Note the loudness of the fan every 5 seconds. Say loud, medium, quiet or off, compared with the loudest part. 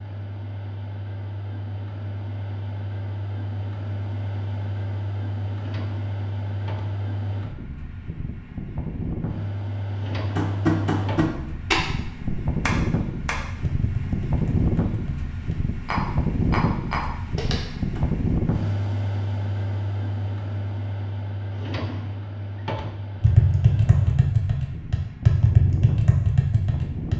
medium, medium, loud, loud, medium, medium.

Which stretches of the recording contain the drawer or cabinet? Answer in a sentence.
The drawer or cabinet can be heard from 5.5 to 7.0 s, from 9.9 to 11.3 s and from 21.5 to 23.1 s.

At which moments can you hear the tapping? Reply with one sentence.
The tapping can be heard from 10.3 to 18.0 s and from 23.1 to 27.1 s.